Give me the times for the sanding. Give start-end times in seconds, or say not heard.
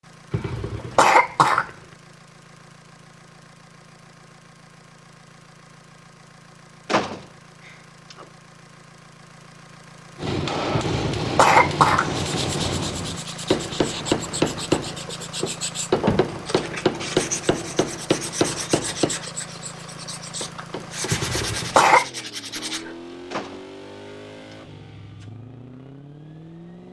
12.1-23.1.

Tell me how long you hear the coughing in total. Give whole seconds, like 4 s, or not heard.
4 s.